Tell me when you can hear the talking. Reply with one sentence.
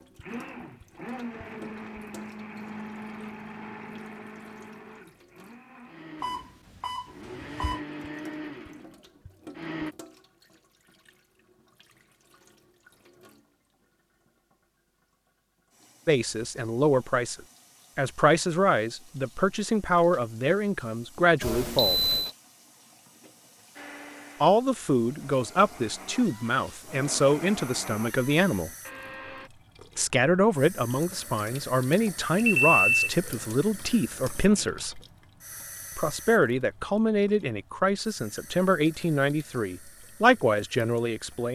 The talking can be heard from 16.1 to 22.0 s, from 24.4 to 28.7 s, from 29.9 to 35.0 s and from 36.0 to 41.5 s.